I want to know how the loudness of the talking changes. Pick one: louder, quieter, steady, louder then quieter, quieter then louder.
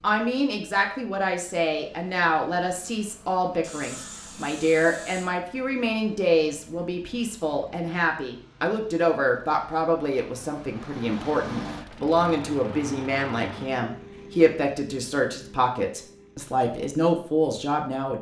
steady.